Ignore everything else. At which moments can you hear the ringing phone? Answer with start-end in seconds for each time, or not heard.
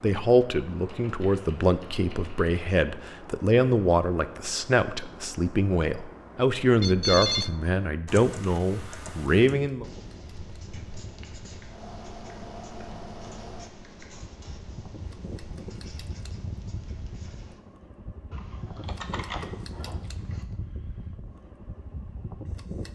6.8-7.6.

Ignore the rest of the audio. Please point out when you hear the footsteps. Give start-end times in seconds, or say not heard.
not heard.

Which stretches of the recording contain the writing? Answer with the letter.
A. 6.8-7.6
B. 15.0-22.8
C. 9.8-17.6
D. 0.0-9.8
C.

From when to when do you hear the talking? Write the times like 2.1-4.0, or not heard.
0.0-9.8.